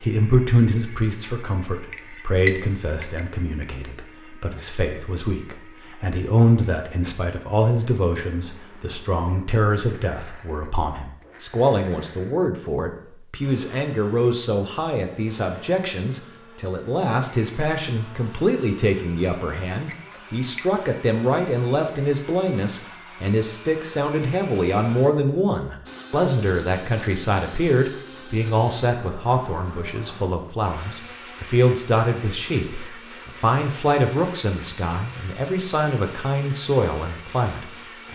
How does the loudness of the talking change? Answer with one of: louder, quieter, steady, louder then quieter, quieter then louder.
steady.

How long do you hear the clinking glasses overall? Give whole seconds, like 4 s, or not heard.
3 s.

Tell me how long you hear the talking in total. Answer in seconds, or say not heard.
38 s.